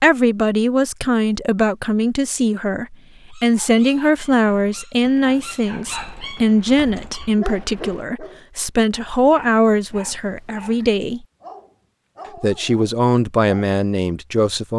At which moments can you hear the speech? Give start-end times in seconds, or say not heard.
0.0-11.2, 12.4-14.7.